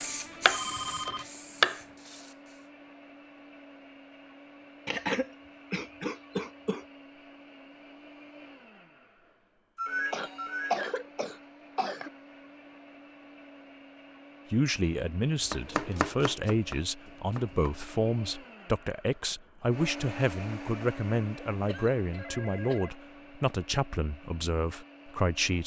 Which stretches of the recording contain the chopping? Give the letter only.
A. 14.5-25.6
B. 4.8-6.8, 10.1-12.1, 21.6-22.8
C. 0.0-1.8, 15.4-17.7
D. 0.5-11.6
C.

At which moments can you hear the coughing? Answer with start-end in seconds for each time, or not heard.
4.8-6.8, 10.1-12.1, 21.6-22.8.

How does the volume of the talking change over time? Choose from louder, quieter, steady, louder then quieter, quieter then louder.
steady.